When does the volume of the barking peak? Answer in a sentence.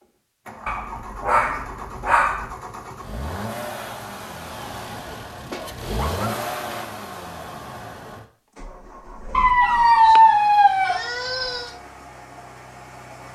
The loudest moment of the barking is at 10 seconds.